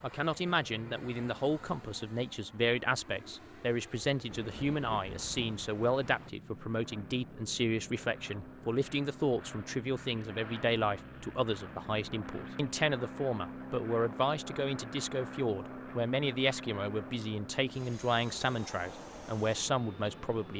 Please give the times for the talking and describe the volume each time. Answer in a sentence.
You can hear the talking from 0.0 to 20.5 s, at a steady volume.